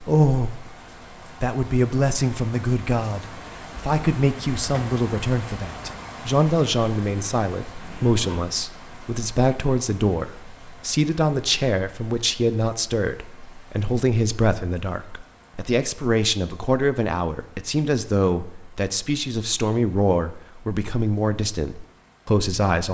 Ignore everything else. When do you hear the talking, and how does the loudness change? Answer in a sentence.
You can hear the talking briefly from 0.0 to 0.7 s; and from 1.4 to 22.8 s, at a steady volume.